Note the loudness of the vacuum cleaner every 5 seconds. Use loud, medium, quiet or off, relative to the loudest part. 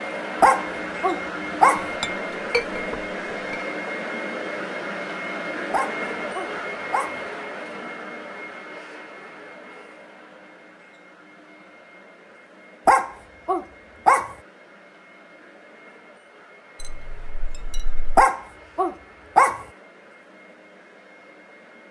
loud, loud, quiet, quiet, quiet.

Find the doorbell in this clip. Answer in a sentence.
The doorbell can't be heard in this clip.